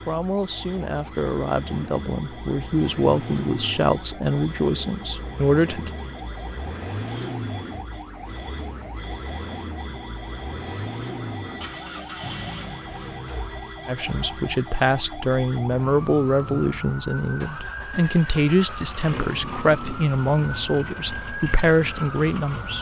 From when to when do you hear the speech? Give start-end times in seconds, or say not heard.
0.1-5.9, 13.8-22.7.